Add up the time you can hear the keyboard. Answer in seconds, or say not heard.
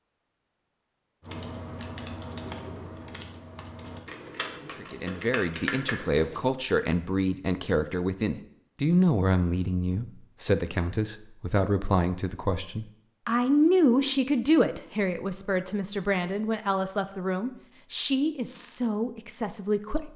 5 s.